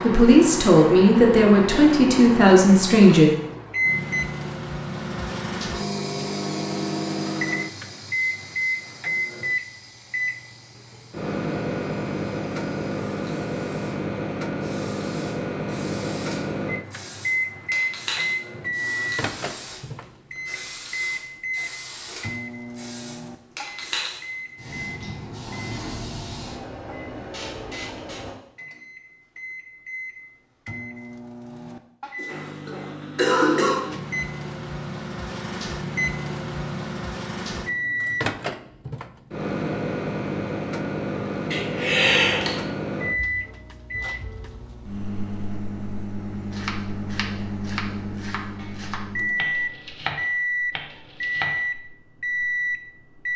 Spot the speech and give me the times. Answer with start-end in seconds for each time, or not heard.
0.0-3.3.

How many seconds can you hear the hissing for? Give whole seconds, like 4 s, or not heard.
23 s.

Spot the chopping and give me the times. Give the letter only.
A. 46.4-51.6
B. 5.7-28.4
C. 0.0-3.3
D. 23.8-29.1
A.